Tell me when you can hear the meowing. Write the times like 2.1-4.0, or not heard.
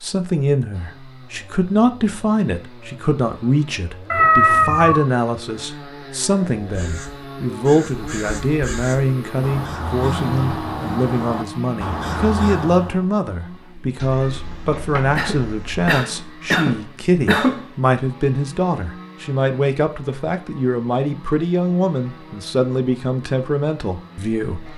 4.1-5.0, 14.0-15.9.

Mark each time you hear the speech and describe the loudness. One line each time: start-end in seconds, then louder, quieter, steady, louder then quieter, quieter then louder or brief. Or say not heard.
0.0-24.7 steady.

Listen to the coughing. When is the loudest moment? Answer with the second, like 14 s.
17 s.